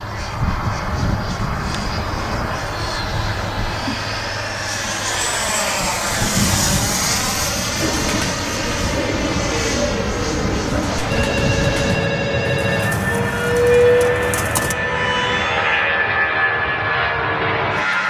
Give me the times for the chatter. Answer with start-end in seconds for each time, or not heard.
not heard.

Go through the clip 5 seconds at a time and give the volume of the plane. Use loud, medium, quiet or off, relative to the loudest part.
medium, loud, loud, loud.